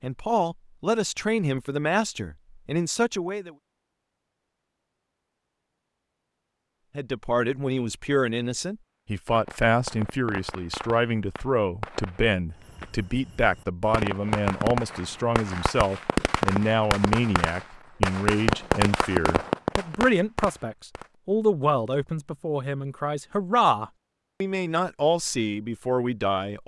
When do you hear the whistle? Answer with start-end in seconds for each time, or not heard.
not heard.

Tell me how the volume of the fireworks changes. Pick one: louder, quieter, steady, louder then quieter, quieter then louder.
louder.